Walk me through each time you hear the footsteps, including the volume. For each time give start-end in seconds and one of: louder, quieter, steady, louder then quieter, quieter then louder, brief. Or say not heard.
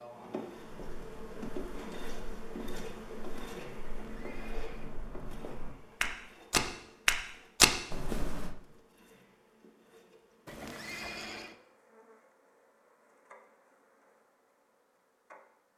0.6-8.6 louder.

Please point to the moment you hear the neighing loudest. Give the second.
11 s.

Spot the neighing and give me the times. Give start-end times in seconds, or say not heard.
3.8-5.0, 10.4-11.6.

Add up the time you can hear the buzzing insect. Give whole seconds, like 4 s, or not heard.
16 s.